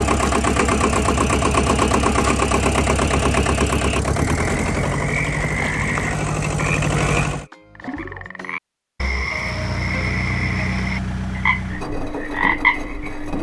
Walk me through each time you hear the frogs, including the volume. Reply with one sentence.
You can hear the frogs from 0.1 to 13.3 s, getting louder.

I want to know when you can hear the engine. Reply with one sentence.
The engine can be heard from 0.0 to 7.5 s and from 9.3 to 13.3 s.